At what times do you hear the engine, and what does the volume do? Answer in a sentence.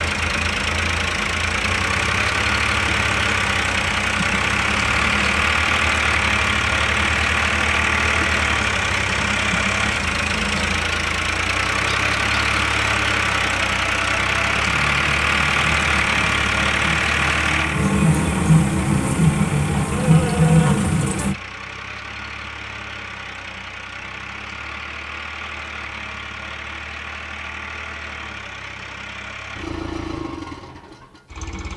The engine can be heard from 0.0 to 31.7 s, getting quieter.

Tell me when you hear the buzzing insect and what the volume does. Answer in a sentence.
You can hear the buzzing insect from 0.0 to 21.4 s, getting louder.